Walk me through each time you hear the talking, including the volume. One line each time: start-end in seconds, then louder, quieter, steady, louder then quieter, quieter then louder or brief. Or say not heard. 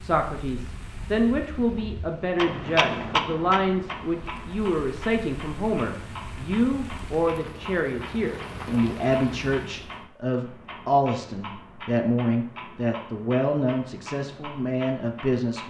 0.0-15.6 steady.